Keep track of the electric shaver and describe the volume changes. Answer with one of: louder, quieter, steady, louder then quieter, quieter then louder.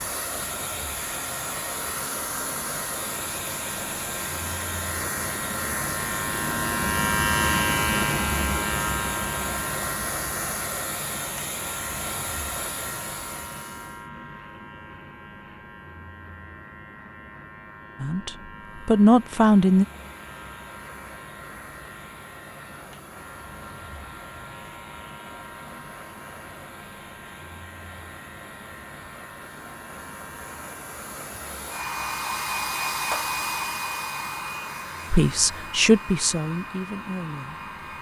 quieter.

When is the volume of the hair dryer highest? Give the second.
33 s.